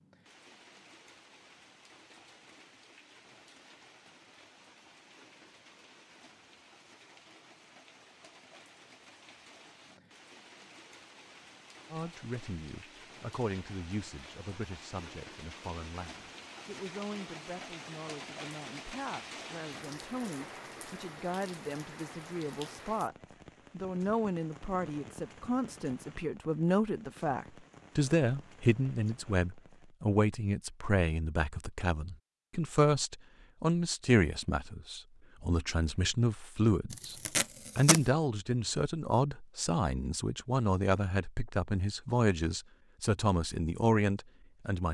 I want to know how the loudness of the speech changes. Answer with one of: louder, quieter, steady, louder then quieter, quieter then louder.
louder.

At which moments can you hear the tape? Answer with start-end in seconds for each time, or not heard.
36.9-38.0.